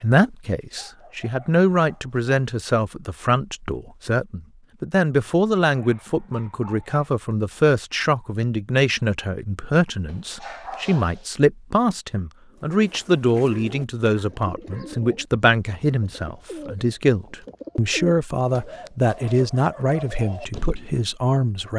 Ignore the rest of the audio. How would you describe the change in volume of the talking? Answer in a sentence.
The loudness of the talking stays about the same.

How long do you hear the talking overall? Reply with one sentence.
The talking can be heard for 22 seconds in total.